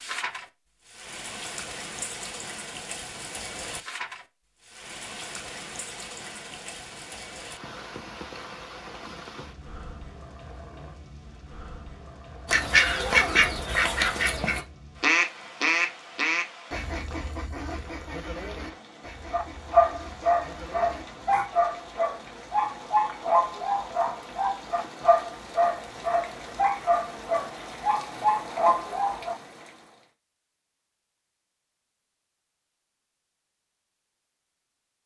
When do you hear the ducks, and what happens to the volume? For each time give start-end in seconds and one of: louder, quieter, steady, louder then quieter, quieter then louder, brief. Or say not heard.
12.4-21.5 quieter.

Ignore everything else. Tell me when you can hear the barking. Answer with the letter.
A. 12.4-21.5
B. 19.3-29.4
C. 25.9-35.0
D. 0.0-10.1
B.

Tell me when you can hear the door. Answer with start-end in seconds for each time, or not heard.
not heard.